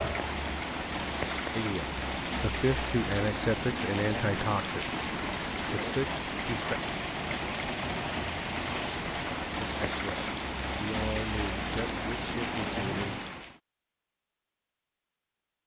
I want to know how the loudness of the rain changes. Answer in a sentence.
The volume of the rain stays about the same.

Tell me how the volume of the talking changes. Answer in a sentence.
The loudness of the talking goes down.